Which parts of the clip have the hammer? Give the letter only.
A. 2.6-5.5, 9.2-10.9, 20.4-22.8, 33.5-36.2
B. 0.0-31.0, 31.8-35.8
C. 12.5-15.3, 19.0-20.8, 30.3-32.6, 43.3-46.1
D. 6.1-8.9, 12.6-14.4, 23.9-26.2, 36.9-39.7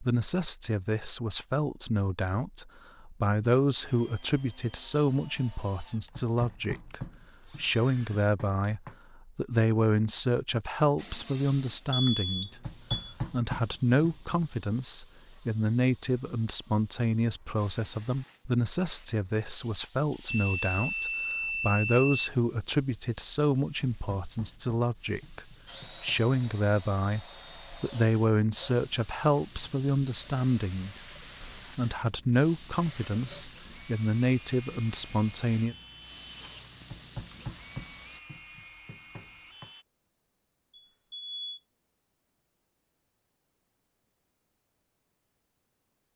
D.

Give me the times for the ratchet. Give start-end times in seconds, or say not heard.
not heard.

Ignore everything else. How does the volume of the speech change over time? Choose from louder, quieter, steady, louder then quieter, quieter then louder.
steady.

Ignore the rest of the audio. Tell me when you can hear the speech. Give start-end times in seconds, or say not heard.
0.0-31.0, 31.8-35.8.